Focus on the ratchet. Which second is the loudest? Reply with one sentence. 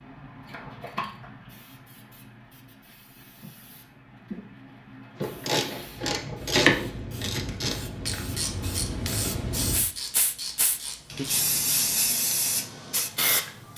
The loudest moment of the ratchet is at 7 seconds.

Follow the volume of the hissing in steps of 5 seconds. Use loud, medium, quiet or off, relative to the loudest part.
quiet, medium, loud.